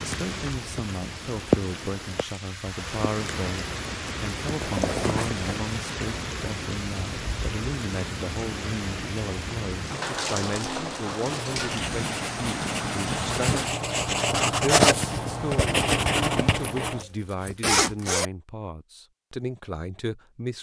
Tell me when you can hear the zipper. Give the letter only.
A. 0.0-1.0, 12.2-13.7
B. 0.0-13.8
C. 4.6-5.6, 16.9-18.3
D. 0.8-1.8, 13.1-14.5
C.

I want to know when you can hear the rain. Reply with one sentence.
You can hear the rain from 0.0 to 13.8 s.